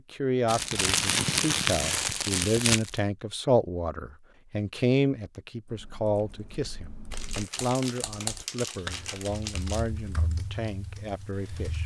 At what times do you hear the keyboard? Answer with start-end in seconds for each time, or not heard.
5.7-11.8.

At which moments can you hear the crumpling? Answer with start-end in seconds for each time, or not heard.
0.5-3.0, 7.1-9.9.